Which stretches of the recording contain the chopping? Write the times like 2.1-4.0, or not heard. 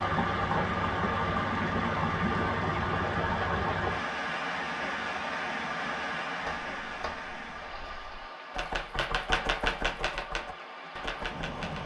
6.4-11.8.